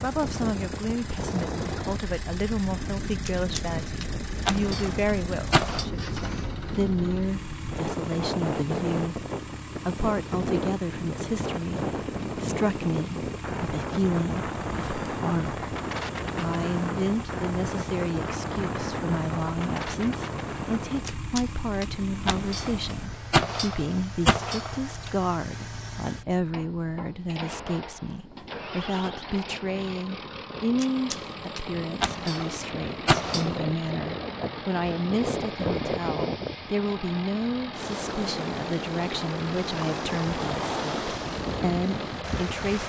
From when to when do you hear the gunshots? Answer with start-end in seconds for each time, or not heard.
3.2-5.9, 21.1-25.1, 30.8-33.6.